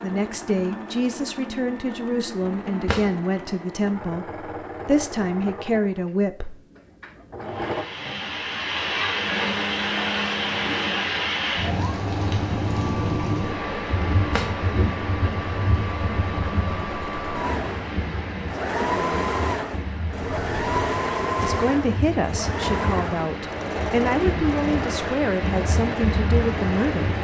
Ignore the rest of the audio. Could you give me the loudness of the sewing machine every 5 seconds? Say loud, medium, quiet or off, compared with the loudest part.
medium, medium, medium, loud, loud, medium.